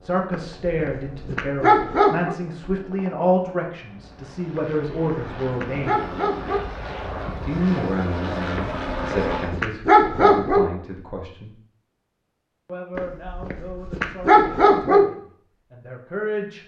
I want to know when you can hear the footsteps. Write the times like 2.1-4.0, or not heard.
not heard.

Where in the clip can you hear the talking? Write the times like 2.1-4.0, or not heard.
0.0-6.1, 7.5-11.6, 12.7-16.6.